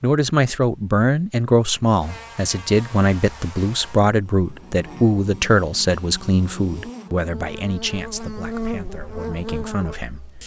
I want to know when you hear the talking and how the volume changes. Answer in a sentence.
You can hear the talking from 0.0 to 10.3 s, getting quieter.